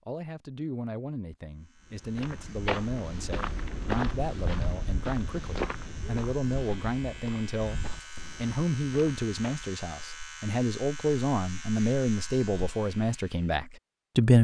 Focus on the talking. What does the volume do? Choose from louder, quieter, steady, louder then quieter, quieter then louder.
louder.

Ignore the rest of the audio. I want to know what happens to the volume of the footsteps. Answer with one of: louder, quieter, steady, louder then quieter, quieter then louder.
quieter.